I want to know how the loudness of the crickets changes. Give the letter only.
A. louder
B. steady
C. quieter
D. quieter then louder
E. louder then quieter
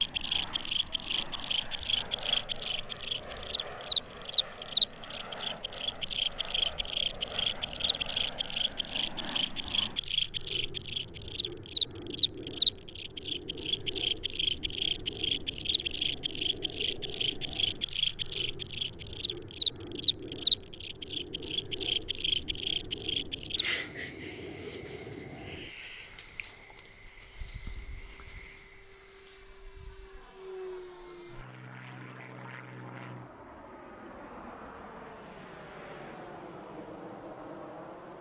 B.